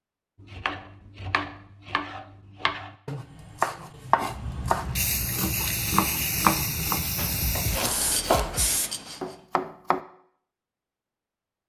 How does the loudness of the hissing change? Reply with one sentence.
The loudness of the hissing stays about the same.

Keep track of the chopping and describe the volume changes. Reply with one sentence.
The loudness of the chopping goes up.